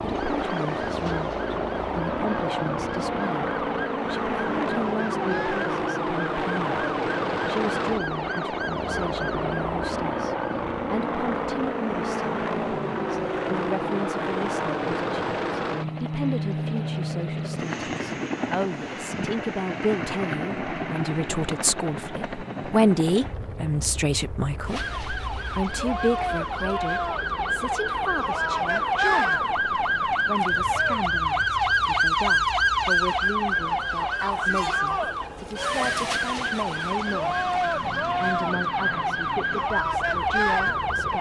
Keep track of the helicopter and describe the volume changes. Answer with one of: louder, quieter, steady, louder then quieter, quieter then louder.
quieter.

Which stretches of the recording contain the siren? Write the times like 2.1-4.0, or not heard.
0.0-10.7, 24.6-41.1.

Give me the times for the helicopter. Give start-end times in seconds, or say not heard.
0.0-41.1.